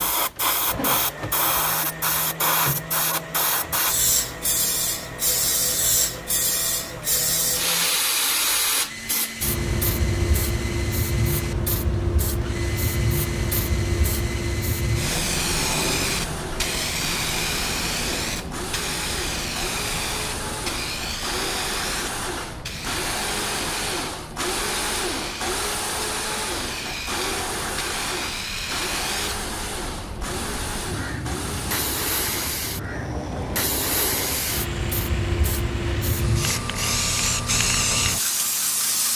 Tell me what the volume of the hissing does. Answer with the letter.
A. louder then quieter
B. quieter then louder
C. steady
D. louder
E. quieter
B.